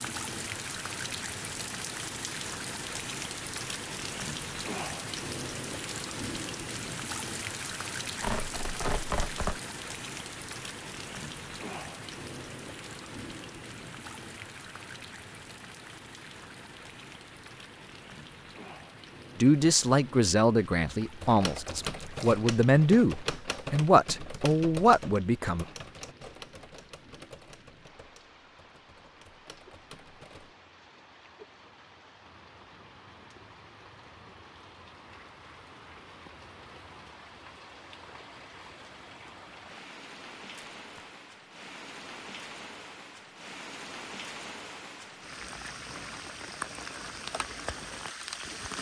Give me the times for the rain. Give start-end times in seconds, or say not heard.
0.0-48.7.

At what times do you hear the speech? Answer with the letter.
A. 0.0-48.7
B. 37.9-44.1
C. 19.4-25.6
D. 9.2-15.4
C.